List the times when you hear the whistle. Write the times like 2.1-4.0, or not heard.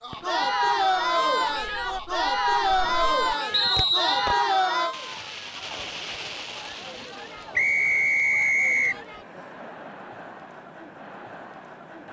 3.5-4.4, 7.5-9.0.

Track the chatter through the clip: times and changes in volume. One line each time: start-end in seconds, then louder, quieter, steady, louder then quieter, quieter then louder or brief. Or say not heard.
0.0-12.0 quieter.